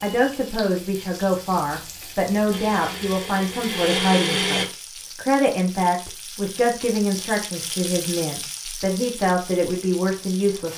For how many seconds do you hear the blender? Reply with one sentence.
You can hear the blender for 2 seconds altogether.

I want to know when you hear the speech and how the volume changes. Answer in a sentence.
You can hear the speech from 0.0 to 10.7 s, at a steady volume.